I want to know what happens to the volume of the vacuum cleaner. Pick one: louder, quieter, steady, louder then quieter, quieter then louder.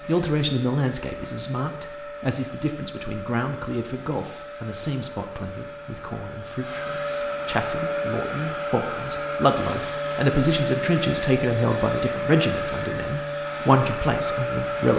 louder.